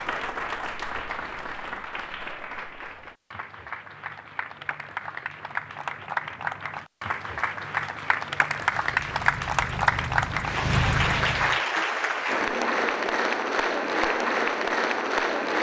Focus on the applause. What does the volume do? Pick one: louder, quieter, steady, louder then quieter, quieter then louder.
louder.